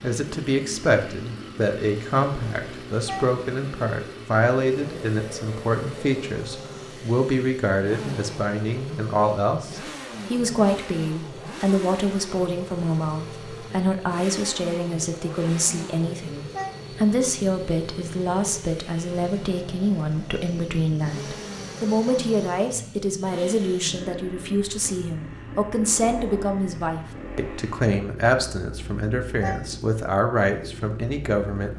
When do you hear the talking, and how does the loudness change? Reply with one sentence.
You can hear the talking from 0.0 to 31.7 s, at a steady volume.